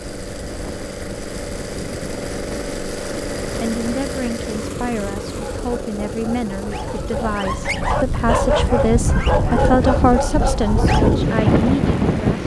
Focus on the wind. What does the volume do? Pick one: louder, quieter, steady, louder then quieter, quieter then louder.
louder.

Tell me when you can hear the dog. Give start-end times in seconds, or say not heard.
5.3-11.4.